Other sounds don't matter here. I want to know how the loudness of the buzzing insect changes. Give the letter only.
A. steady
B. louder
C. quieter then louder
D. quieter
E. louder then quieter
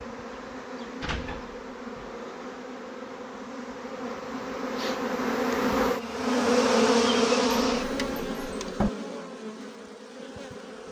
E.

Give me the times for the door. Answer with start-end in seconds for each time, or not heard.
1.0-2.1, 7.7-8.9.